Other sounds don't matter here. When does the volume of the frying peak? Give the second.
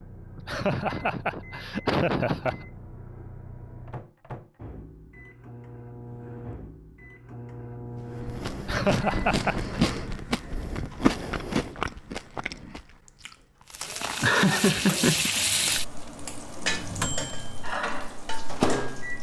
15 s.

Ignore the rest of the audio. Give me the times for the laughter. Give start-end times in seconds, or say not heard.
0.3-2.6, 8.6-9.8, 14.2-15.3.